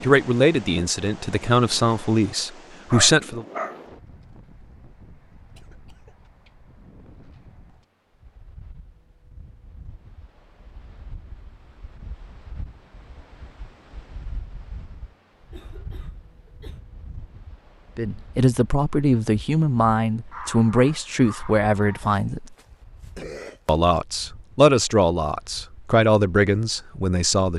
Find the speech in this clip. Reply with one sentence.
The speech can be heard from 0.0 to 3.5 s, from 17.9 to 22.6 s and from 23.6 to 27.5 s.